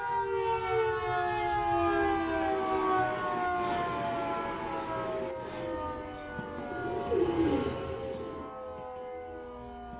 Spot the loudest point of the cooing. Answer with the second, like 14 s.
7 s.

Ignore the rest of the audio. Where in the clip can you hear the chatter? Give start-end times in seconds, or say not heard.
not heard.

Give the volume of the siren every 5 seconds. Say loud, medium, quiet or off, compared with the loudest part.
loud, medium.